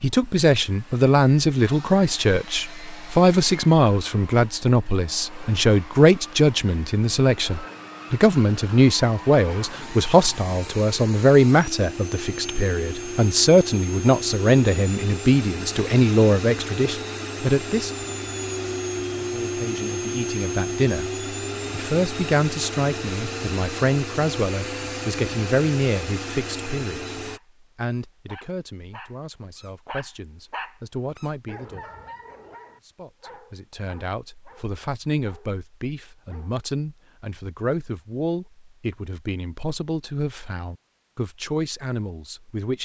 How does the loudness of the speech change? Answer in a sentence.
The volume of the speech goes down.